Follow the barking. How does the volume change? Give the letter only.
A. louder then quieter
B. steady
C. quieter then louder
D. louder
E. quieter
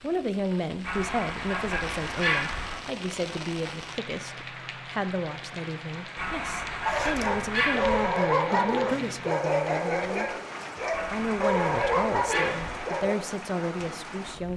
B.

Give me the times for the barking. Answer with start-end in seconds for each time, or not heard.
6.8-13.2.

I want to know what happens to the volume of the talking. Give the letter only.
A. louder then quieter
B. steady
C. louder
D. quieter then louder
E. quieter
B.